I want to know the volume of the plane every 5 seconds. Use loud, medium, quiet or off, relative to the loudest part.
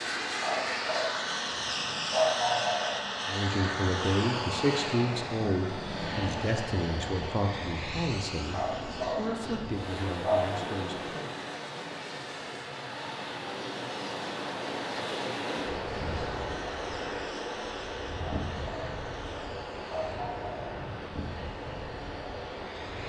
loud, medium, quiet, quiet, quiet.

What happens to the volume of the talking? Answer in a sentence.
The loudness of the talking goes down.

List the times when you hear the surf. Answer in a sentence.
The surf can be heard from 5.8 to 23.0 s.